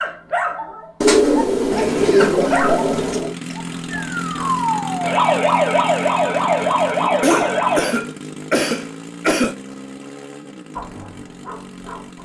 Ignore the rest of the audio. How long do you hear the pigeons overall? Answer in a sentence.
You can hear the pigeons for 2 seconds altogether.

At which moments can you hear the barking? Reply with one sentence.
The barking can be heard from 0.0 to 4.5 s and from 10.8 to 12.2 s.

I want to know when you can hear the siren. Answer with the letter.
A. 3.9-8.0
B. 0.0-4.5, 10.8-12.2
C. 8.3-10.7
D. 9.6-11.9
A.